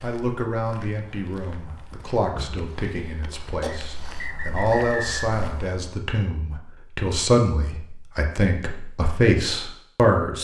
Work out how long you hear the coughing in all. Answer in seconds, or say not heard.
2 s.